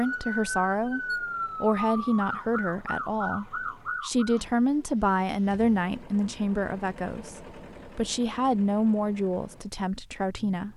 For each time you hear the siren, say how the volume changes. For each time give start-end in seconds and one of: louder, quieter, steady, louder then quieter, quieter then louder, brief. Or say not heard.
0.0-4.5 steady.